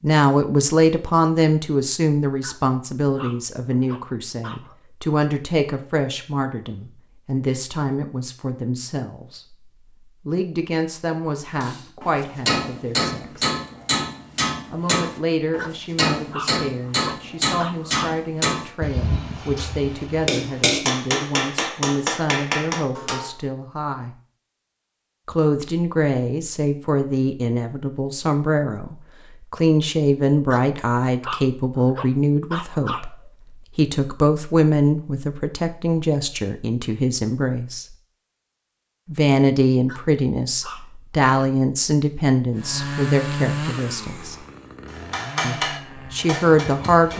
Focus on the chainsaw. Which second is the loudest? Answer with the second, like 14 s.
43 s.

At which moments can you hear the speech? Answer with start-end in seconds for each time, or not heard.
0.0-9.7, 10.2-13.5, 14.7-24.1, 25.2-37.9, 39.0-44.4, 45.4-47.1.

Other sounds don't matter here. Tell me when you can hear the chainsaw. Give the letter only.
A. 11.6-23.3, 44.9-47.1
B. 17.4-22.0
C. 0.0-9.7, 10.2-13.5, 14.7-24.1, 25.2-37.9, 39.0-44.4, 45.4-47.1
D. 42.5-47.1
D.